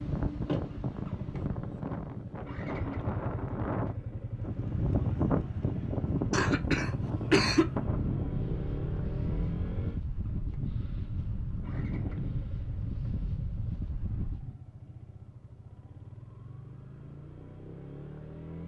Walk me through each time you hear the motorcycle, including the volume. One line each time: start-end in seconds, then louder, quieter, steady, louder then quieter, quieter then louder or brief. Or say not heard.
0.0-18.6 quieter.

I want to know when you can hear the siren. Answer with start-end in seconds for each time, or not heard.
not heard.